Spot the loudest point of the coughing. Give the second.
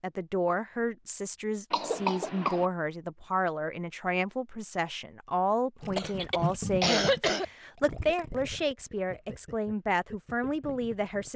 7 s.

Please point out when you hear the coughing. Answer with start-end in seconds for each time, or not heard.
1.7-2.6, 6.0-7.5.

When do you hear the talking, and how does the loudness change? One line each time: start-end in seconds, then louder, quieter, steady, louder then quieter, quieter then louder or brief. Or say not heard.
0.0-11.3 steady.